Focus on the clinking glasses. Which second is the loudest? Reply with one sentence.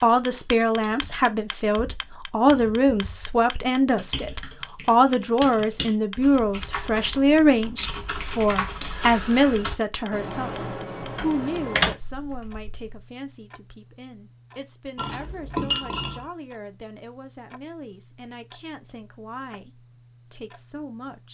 The volume of the clinking glasses peaks at 16 seconds.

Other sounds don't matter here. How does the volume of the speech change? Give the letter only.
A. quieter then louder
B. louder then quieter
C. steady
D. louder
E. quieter
E.